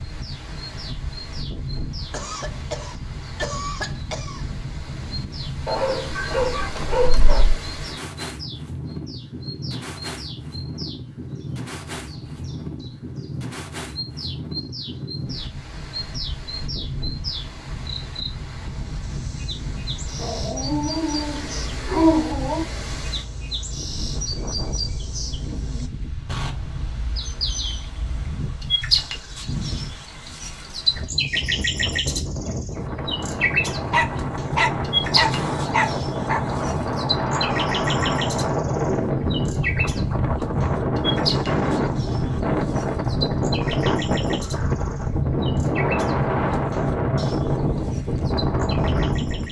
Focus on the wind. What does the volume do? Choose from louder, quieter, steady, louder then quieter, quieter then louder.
louder.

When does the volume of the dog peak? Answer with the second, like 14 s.
22 s.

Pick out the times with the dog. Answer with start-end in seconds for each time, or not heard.
5.7-7.5, 20.2-22.6, 33.9-36.4.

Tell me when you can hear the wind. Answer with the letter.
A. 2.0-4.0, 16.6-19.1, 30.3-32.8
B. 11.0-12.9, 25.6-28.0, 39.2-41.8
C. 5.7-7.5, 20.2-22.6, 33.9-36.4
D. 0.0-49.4
D.